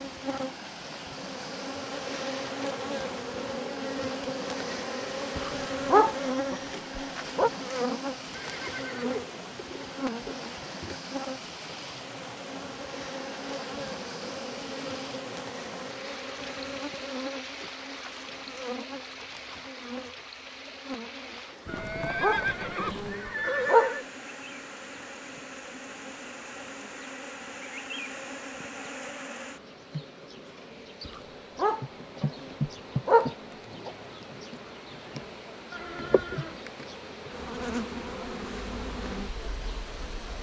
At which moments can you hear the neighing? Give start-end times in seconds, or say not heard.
8.3-10.3, 21.6-24.1, 35.7-36.6.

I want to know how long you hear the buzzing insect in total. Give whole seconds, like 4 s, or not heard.
40 s.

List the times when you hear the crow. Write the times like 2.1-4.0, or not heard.
not heard.